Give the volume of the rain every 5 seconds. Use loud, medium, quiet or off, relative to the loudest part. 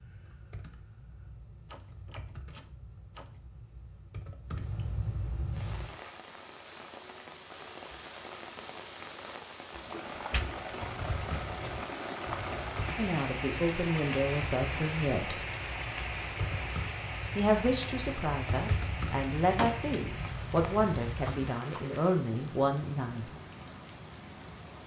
off, medium, loud, loud, medium.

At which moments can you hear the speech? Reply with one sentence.
You can hear the speech from 12.9 to 15.3 s and from 17.4 to 23.3 s.